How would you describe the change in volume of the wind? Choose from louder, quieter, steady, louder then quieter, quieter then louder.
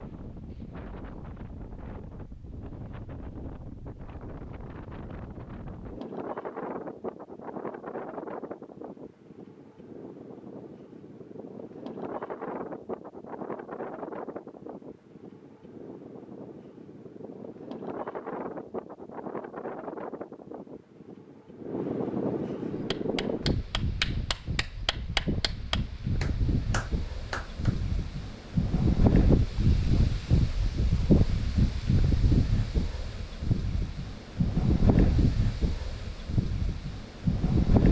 louder.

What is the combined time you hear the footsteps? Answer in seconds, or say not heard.
not heard.